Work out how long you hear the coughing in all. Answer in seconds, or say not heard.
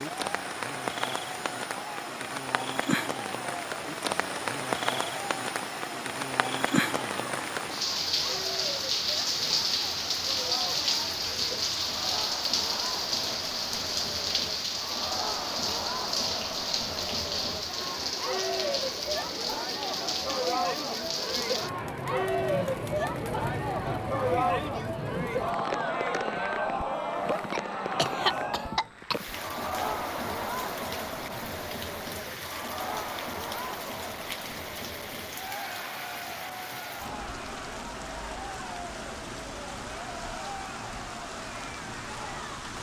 2 s.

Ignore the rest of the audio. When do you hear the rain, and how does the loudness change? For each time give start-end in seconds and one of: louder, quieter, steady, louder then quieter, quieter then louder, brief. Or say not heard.
0.0-42.7 quieter.